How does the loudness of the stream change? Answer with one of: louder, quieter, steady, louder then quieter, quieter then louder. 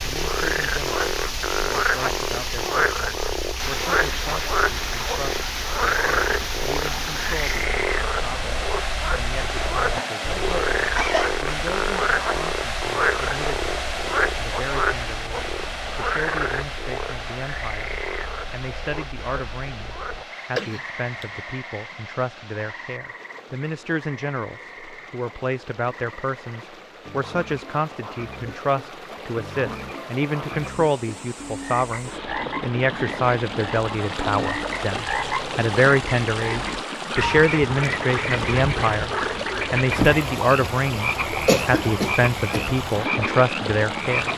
quieter then louder.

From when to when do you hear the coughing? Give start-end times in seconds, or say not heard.
9.8-11.3, 20.6-21.4, 41.5-42.6.